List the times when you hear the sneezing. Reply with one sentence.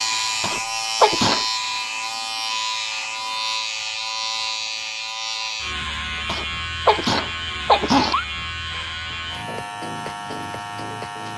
The sneezing can be heard from 0.4 to 1.4 s and from 6.2 to 8.2 s.